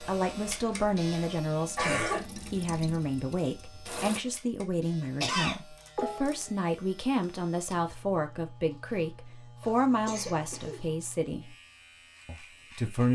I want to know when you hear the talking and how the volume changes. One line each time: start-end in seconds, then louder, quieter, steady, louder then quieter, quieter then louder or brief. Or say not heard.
0.0-11.6 steady
12.2-13.1 brief.